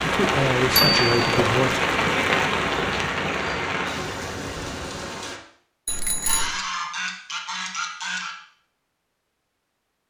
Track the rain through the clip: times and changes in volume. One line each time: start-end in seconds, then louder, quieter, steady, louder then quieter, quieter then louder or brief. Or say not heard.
0.0-5.4 quieter.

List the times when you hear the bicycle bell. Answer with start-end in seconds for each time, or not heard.
0.8-1.4, 5.8-6.5.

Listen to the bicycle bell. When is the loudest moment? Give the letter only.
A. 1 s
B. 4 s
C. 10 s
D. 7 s
A.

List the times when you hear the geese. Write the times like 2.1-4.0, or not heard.
5.8-8.3.